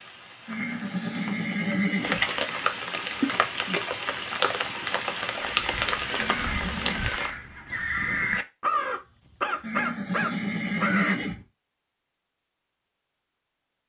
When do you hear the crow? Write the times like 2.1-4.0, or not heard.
5.4-11.2.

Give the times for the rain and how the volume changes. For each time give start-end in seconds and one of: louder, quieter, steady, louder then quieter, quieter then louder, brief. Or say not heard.
0.0-7.3 louder.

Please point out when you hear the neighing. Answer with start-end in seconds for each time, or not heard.
0.5-2.3, 6.2-7.1, 9.6-11.4.